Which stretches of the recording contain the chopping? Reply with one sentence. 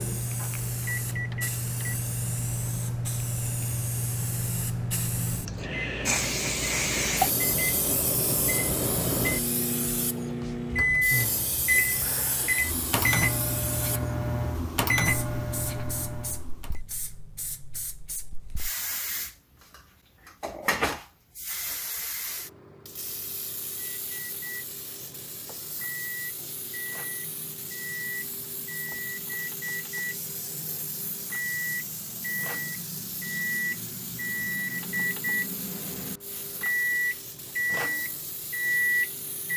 You can't hear the chopping here.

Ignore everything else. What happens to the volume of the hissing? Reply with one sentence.
The volume of the hissing goes down.